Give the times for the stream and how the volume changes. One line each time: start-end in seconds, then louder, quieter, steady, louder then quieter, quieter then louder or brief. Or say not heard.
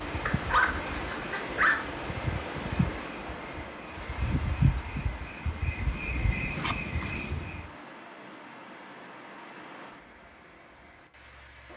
0.0-11.7 quieter.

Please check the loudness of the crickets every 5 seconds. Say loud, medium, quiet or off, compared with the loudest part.
loud, loud, off.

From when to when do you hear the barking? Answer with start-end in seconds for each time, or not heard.
0.2-1.8.